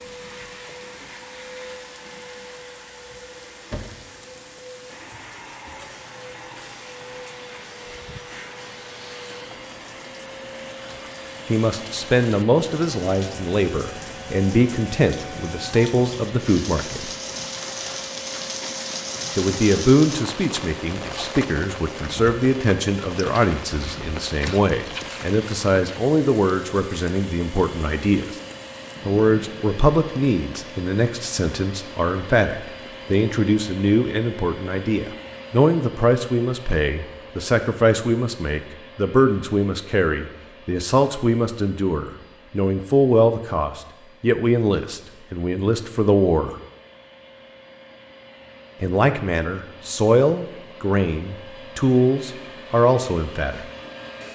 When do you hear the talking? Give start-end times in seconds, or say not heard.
11.5-17.1, 19.4-28.4, 29.1-46.5, 48.8-53.6.